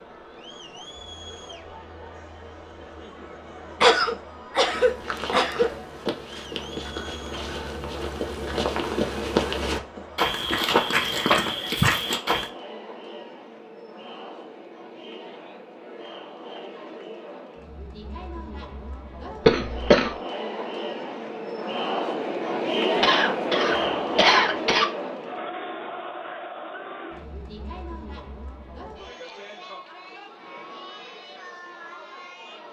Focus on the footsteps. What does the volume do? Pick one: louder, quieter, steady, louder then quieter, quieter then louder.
louder.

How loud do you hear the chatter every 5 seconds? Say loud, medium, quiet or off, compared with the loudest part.
quiet, quiet, quiet, quiet, loud, medium, quiet.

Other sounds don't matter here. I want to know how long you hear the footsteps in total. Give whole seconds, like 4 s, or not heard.
8 s.